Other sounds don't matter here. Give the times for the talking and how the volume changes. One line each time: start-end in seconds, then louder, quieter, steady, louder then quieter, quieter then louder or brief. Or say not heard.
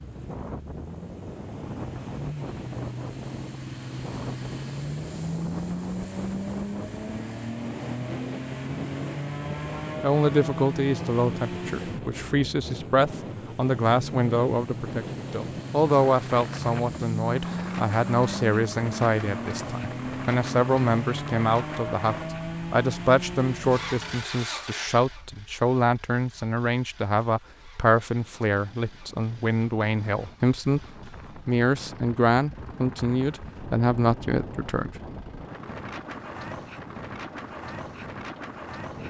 10.0-34.9 steady.